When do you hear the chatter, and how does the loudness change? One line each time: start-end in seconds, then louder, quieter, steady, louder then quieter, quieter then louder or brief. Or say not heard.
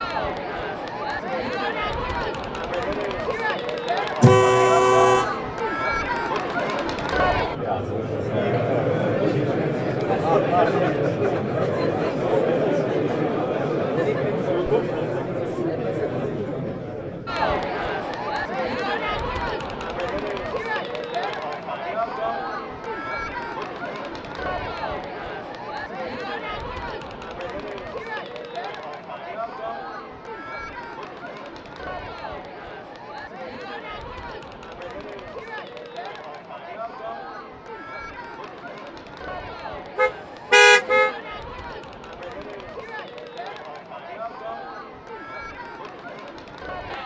0.0-47.0 quieter.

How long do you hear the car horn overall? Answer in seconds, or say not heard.
2 s.